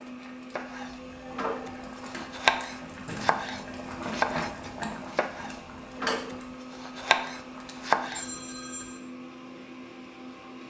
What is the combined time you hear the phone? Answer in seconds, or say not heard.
2 s.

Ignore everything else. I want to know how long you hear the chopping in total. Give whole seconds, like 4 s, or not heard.
8 s.